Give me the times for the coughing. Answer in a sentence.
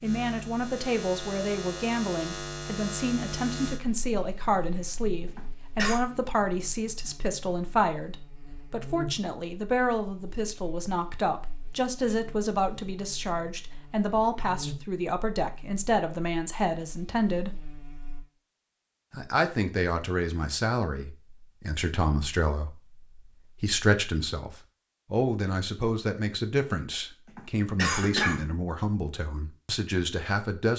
The coughing can be heard from 5.2 to 6.0 s and from 27.2 to 28.4 s.